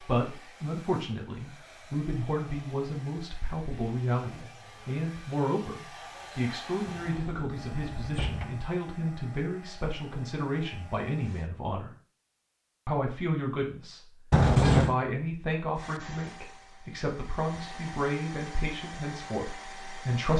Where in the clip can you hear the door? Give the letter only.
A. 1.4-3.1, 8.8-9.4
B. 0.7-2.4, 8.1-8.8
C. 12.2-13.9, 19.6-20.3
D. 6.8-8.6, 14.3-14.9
D.